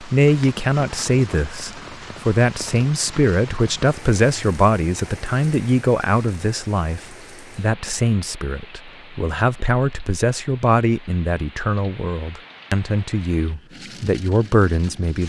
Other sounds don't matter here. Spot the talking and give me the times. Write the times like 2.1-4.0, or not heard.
0.0-15.2.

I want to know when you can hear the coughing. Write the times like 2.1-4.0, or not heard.
not heard.